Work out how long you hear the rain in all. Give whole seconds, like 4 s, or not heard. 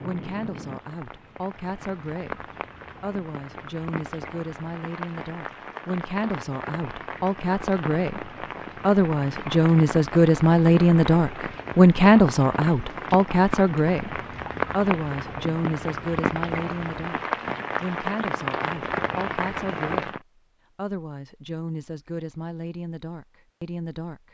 20 s.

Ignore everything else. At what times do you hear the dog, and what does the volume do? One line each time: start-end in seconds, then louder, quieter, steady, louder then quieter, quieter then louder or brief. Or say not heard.
not heard.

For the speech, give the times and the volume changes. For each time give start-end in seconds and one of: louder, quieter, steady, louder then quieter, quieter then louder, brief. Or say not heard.
0.0-17.2 louder then quieter
17.8-24.2 steady.